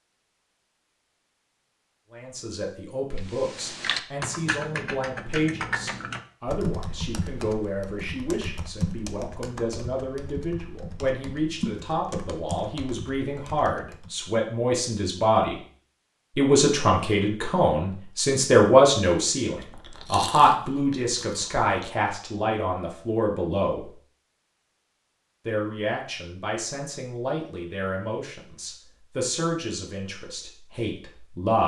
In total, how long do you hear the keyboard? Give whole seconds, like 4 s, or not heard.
11 s.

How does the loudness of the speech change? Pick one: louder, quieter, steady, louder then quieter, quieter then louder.
louder then quieter.